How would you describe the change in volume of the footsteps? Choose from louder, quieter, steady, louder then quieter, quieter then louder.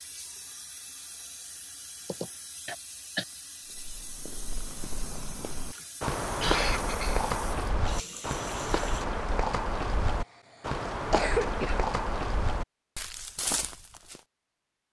louder.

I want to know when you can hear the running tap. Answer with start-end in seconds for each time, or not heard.
0.0-9.1.